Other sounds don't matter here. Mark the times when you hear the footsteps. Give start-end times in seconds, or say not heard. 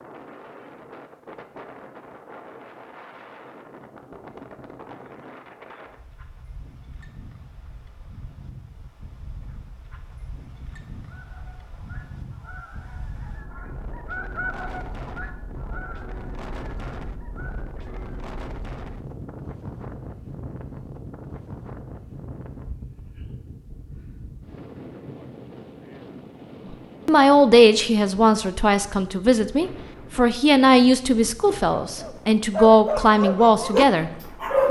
not heard.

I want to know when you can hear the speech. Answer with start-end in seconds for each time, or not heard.
26.6-34.6.